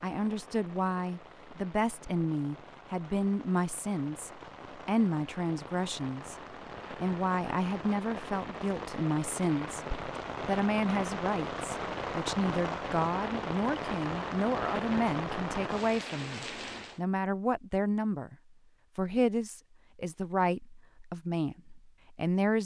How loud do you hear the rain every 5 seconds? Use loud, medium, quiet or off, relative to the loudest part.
quiet, medium, loud, loud, off.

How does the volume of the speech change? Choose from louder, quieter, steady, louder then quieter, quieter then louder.
steady.